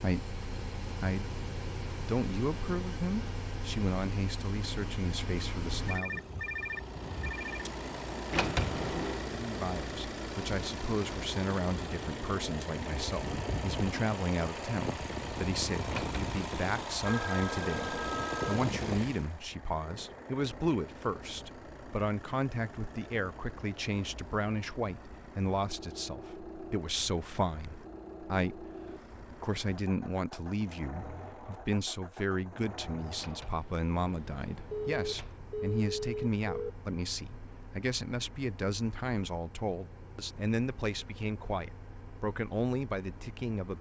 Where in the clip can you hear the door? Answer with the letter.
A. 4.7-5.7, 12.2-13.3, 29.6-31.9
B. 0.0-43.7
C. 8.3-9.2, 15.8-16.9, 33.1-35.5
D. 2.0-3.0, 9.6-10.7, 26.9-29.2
C.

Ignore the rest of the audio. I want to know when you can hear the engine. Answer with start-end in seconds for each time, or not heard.
0.0-43.7.